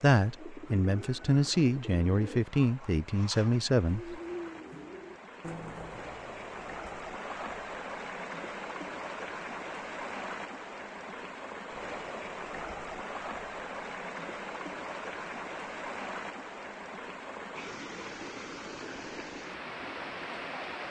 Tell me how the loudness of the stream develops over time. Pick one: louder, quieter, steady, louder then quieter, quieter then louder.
louder.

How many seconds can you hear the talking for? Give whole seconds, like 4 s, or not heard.
4 s.